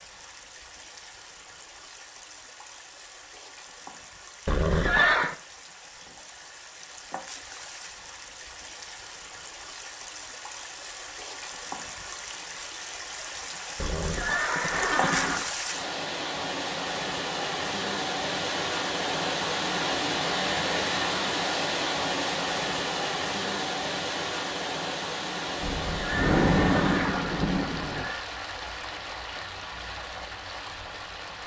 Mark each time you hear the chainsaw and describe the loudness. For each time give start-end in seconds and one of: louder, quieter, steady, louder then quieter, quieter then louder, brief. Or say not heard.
not heard.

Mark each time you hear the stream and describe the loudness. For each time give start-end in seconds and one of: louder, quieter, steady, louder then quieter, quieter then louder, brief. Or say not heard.
0.0-31.4 louder then quieter.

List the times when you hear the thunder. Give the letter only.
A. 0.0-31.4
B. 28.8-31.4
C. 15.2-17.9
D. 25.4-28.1
D.